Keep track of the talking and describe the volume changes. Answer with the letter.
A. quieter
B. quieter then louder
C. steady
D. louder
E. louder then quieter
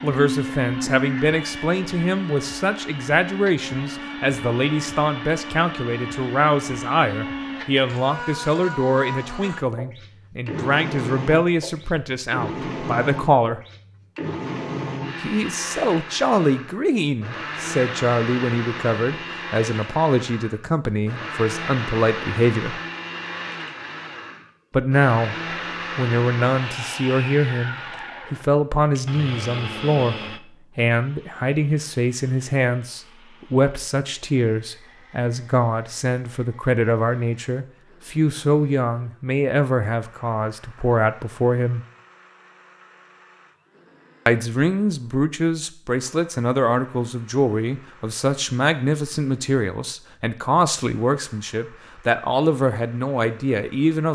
C.